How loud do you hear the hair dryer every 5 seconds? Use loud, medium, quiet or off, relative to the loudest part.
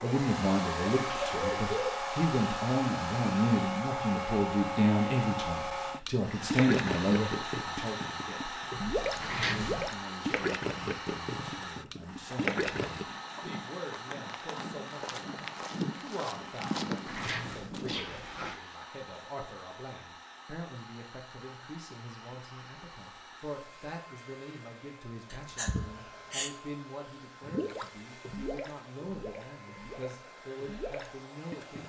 loud, loud, medium, quiet, quiet, quiet, quiet.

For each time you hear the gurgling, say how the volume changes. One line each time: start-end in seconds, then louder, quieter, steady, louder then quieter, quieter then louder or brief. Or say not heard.
6.5-13.1 steady
27.4-31.8 quieter then louder.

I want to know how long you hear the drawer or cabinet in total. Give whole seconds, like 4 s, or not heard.
2 s.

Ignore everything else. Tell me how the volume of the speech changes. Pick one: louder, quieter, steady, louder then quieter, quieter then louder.
quieter.